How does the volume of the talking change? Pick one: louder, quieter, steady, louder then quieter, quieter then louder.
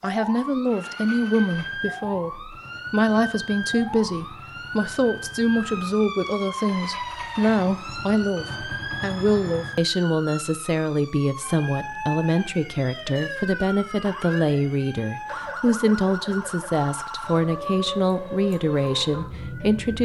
steady.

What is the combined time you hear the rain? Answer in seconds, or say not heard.
not heard.